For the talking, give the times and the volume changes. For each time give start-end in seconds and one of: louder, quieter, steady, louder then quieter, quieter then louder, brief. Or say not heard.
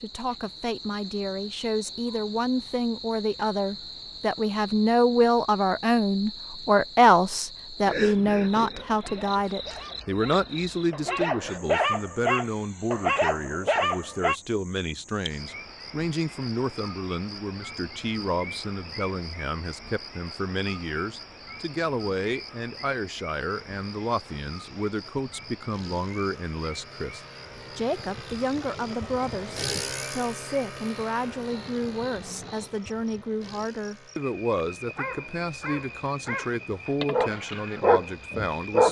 0.0-38.8 quieter.